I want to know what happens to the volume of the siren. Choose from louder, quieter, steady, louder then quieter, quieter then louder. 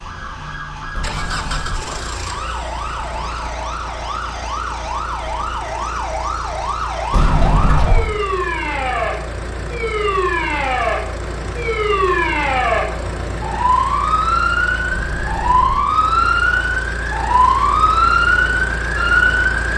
louder.